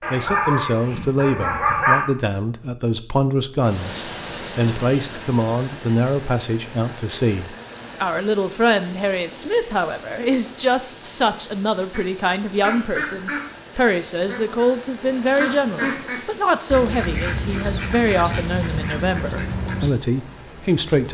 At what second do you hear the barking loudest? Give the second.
2 s.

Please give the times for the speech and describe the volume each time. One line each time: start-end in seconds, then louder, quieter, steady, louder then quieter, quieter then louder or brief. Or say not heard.
0.1-21.0 steady.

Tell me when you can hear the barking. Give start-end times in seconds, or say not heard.
0.0-2.0.